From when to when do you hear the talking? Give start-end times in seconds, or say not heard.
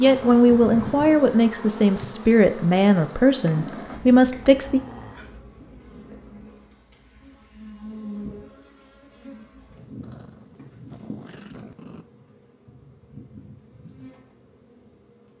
0.0-4.8.